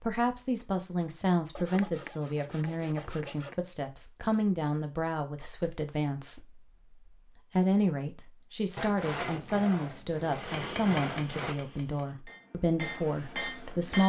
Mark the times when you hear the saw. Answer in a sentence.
The saw can be heard from 1.6 to 3.5 s and from 8.8 to 11.6 s.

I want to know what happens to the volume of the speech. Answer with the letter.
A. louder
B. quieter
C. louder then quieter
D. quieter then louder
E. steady
E.